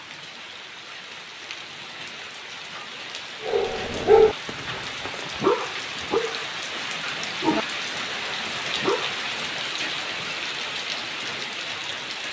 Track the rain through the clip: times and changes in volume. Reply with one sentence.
You can hear the rain from 0.0 to 12.2 s, getting louder.